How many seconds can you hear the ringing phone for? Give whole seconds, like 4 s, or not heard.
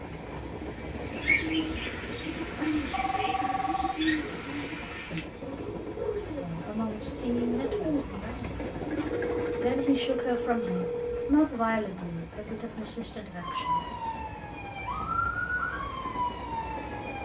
4 s.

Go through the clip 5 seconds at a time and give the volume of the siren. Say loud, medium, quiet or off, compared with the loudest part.
off, off, loud, loud.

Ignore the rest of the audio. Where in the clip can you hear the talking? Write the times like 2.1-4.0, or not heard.
6.3-8.5, 9.6-13.8.